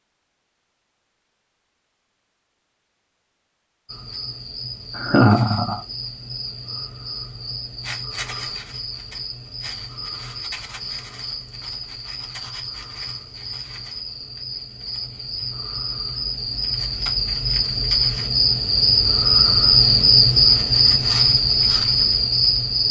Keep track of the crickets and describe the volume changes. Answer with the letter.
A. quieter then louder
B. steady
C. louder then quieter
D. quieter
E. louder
E.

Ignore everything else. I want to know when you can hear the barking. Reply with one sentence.
You can't hear the barking here.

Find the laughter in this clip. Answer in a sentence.
You can hear the laughter from 5.0 to 5.8 s.